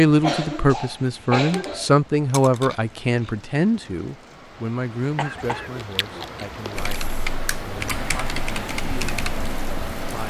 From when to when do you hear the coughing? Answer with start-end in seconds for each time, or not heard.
0.2-1.9, 5.2-6.3.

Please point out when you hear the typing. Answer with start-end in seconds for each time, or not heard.
6.8-10.2.